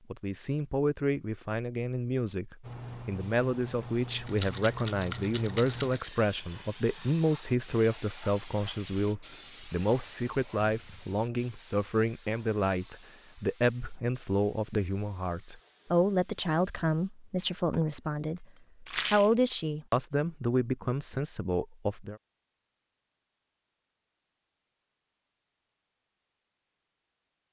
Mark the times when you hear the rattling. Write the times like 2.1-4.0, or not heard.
4.2-6.1, 18.9-19.4.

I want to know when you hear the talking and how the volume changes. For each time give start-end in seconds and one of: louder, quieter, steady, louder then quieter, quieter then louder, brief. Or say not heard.
0.1-22.2 steady.